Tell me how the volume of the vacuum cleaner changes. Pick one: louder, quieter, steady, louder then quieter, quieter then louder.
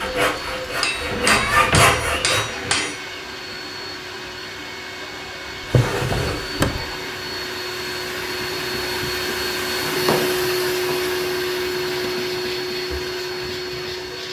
louder.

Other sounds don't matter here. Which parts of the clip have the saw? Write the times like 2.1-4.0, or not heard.
0.0-2.6.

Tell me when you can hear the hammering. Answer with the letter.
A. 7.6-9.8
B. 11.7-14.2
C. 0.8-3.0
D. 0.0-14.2
C.